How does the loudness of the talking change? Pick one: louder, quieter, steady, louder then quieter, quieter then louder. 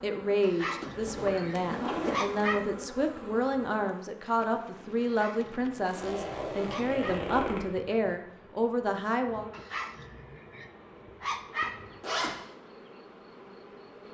steady.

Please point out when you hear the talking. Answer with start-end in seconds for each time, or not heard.
0.0-9.5.